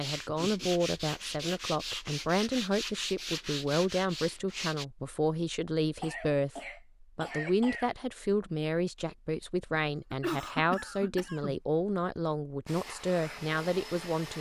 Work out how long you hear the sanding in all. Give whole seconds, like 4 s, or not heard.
5 s.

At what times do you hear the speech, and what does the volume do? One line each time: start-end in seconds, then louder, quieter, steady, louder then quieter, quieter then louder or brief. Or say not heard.
0.0-14.3 steady.